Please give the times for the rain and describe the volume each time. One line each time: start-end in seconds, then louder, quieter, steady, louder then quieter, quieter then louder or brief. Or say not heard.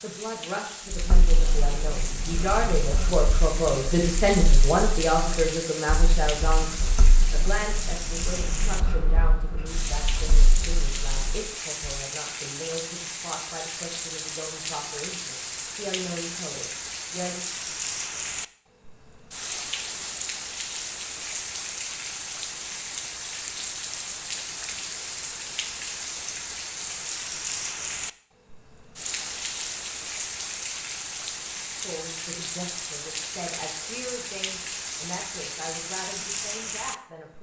0.0-37.3 steady.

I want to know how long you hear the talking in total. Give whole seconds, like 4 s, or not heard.
23 s.